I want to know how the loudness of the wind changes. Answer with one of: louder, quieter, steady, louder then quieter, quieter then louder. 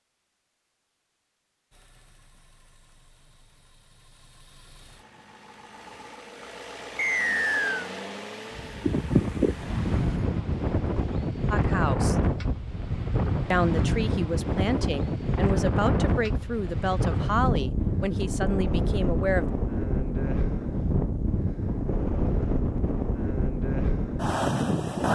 steady.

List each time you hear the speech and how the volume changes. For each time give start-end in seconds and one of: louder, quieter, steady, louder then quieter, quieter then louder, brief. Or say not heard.
11.5-12.2 brief
13.5-19.5 steady.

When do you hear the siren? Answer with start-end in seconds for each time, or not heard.
not heard.